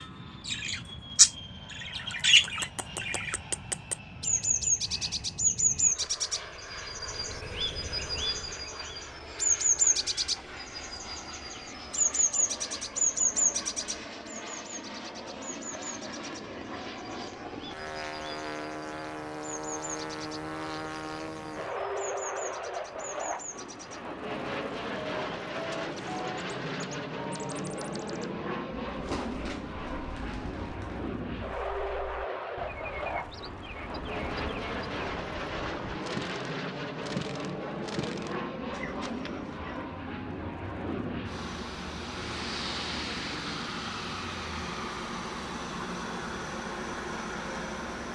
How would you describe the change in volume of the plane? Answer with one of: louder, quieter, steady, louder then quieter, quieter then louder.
louder.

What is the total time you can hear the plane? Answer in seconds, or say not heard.
48 s.